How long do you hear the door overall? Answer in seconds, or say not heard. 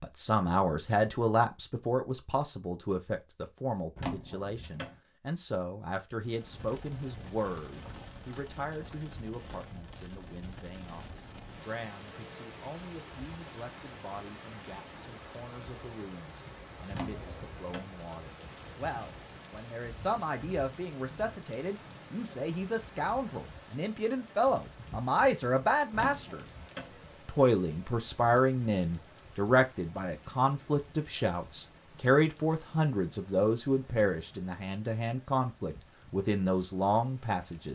3 s.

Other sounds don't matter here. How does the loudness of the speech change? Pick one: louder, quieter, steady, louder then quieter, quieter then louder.
quieter then louder.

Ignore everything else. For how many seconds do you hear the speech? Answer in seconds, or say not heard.
37 s.